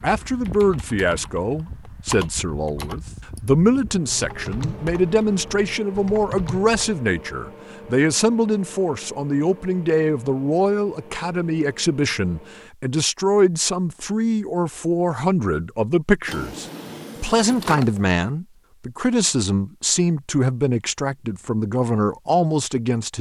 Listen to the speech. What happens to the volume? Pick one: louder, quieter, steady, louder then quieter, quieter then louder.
steady.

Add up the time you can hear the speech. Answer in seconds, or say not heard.
23 s.